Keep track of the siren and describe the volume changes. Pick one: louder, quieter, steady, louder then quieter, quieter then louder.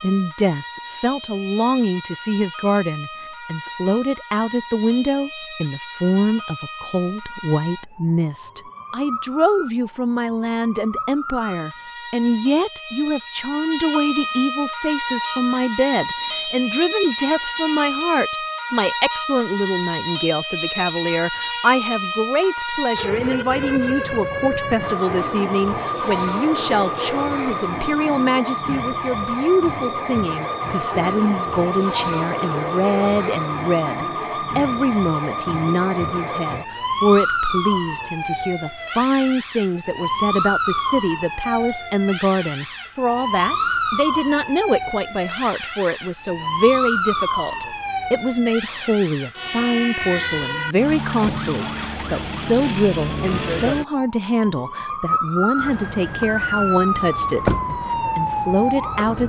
louder.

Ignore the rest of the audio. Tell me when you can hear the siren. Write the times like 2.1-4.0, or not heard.
0.0-59.2.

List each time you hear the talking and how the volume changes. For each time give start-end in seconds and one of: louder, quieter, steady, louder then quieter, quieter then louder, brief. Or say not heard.
0.0-59.2 steady.